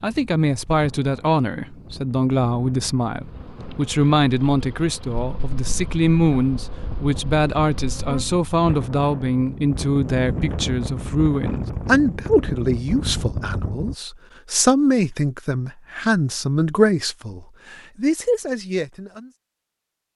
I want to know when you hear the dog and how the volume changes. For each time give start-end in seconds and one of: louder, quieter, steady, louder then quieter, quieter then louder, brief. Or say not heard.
not heard.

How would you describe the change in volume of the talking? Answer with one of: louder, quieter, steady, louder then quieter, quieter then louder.
steady.